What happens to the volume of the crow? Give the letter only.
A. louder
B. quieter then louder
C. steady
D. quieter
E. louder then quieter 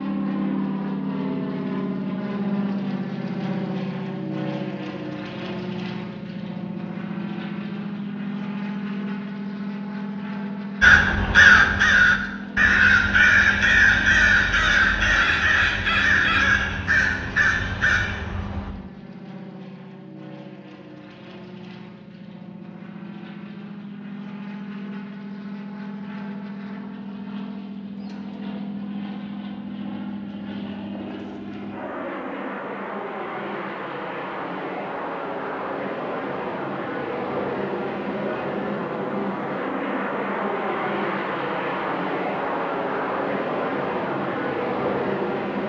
D.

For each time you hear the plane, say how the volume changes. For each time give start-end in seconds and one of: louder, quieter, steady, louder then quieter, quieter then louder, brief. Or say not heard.
0.0-45.6 quieter then louder.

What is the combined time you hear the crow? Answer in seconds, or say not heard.
8 s.